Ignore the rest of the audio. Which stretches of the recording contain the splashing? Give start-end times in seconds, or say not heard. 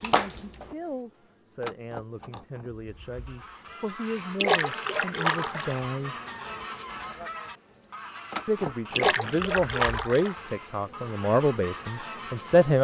0.0-0.8, 4.4-5.8, 8.9-10.3.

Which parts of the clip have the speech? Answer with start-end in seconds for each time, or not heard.
0.0-6.2, 8.4-12.7.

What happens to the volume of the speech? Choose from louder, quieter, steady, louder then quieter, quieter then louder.
louder.